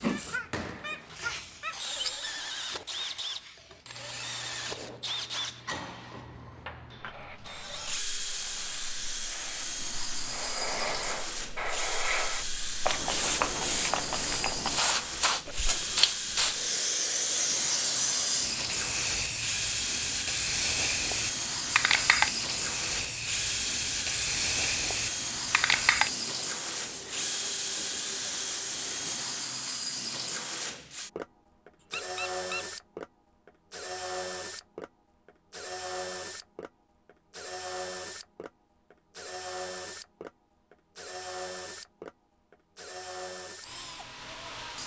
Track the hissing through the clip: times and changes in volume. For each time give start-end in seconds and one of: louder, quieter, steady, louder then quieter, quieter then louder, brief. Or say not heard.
0.0-29.4 louder.